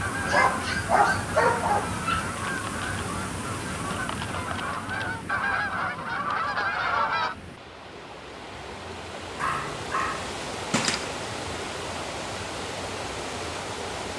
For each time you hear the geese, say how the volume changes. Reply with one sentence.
You can hear the geese from 0.0 to 7.3 s, getting louder.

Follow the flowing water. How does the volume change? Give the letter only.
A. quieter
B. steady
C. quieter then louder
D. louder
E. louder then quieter
C.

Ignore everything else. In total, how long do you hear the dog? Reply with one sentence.
You can hear the dog for 4 seconds altogether.